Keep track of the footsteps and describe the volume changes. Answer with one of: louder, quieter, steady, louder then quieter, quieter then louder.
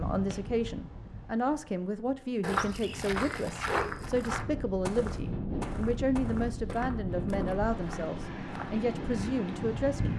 quieter.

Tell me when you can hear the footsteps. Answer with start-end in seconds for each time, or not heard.
2.4-8.8.